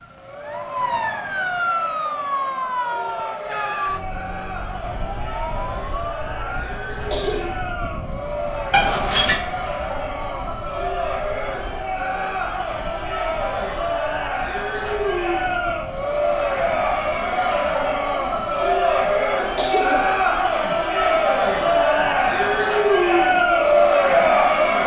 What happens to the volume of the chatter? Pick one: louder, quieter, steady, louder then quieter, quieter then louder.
louder.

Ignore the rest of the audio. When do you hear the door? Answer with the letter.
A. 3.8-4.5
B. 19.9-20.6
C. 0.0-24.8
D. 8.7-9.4
D.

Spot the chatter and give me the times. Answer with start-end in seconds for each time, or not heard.
0.0-24.8.